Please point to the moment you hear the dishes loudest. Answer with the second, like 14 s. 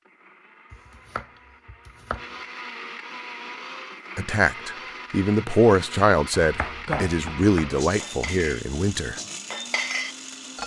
10 s.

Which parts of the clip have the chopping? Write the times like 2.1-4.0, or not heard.
0.7-2.2, 6.4-7.8.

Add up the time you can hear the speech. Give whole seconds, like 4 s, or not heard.
5 s.